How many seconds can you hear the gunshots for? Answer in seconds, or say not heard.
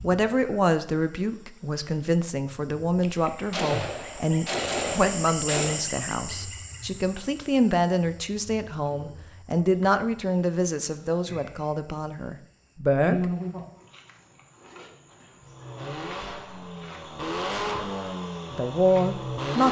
3 s.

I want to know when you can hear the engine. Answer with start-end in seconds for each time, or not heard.
15.4-19.6.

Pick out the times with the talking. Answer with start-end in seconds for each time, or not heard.
0.0-13.3, 18.5-19.6.